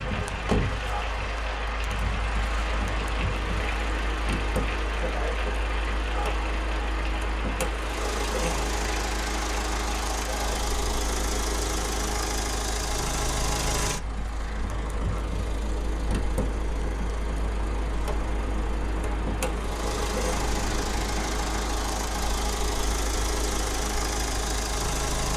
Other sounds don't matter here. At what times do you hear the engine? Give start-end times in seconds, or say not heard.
0.0-25.3.